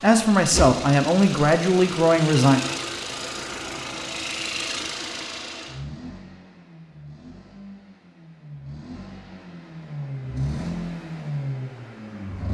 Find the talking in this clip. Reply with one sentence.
The talking can be heard from 0.0 to 2.6 s.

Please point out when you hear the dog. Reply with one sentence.
The dog can't be heard in this clip.